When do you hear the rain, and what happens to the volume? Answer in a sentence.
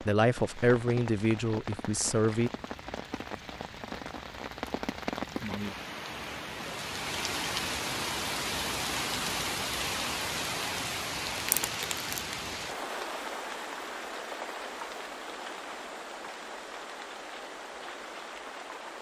The rain can be heard from 0.0 to 18.9 s, getting louder then quieter.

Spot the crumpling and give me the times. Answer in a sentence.
You can hear the crumpling from 11.3 to 12.4 s.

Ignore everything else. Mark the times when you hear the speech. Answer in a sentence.
The speech can be heard from 0.0 to 2.5 s.